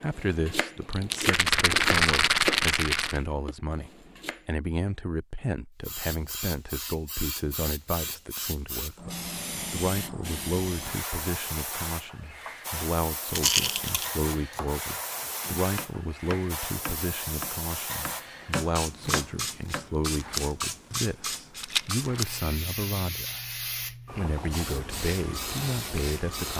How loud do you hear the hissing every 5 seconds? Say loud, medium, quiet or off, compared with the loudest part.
off, loud, loud, loud, loud, loud.